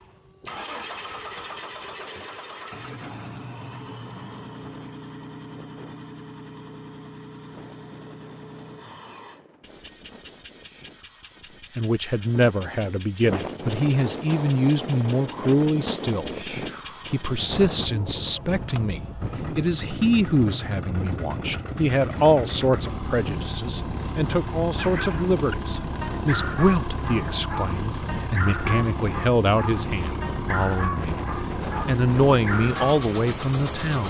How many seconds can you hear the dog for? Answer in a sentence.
You can hear the dog for 8 seconds altogether.